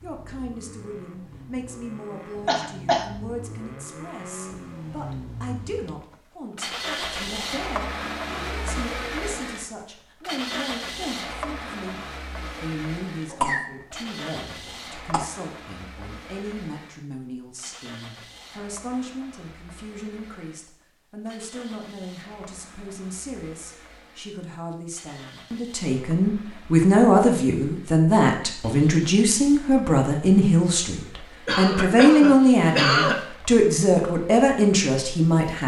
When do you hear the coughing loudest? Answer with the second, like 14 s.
33 s.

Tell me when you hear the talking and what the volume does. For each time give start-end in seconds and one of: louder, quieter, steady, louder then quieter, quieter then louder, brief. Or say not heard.
0.0-12.0 steady
12.6-35.6 louder.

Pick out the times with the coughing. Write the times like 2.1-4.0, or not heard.
2.5-3.1, 13.3-15.2, 31.4-33.2.